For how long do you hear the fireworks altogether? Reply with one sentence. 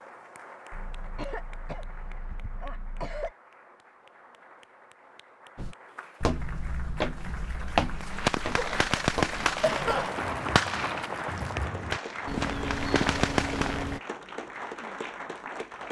You can hear the fireworks for 6 seconds altogether.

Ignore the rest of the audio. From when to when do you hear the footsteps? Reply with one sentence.
You can hear the footsteps from 5.5 to 14.0 s.